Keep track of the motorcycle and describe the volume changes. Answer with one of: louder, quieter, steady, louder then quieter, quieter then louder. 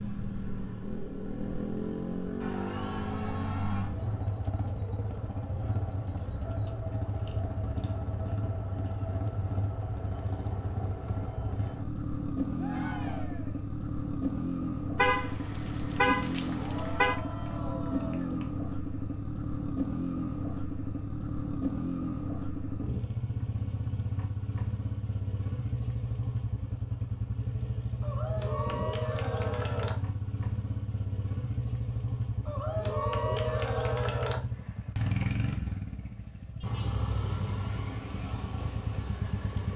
steady.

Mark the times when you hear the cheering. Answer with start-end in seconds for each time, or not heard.
2.4-4.0, 12.6-13.6, 16.5-18.4, 28.0-29.9, 32.5-34.4.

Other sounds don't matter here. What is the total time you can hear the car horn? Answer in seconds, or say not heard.
2 s.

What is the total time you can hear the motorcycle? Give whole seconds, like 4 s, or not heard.
40 s.